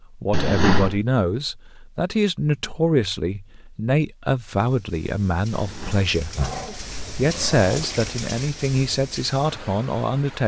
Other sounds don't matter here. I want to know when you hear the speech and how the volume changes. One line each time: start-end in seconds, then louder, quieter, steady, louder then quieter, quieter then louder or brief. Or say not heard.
0.0-10.4 steady.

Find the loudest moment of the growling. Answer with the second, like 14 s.
1 s.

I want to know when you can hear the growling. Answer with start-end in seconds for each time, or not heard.
0.3-1.0, 5.5-7.7.